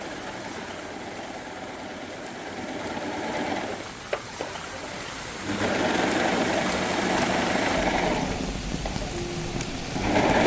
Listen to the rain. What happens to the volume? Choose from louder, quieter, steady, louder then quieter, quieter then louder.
louder.